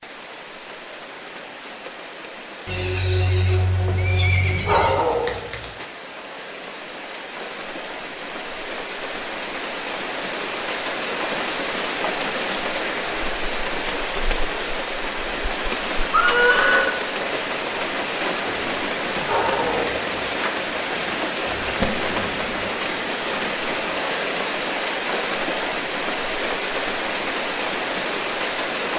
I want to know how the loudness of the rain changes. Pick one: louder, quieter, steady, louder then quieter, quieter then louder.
louder.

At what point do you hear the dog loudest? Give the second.
5 s.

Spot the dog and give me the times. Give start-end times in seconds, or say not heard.
3.9-5.8, 18.4-20.2.